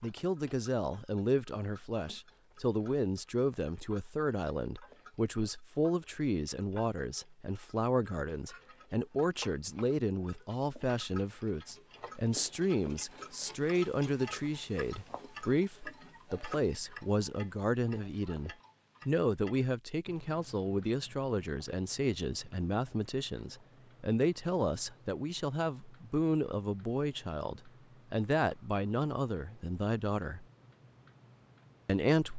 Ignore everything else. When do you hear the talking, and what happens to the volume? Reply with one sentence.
The talking can be heard from 0.0 to 30.4 s, at a steady volume; and briefly from 31.9 to 32.3 s.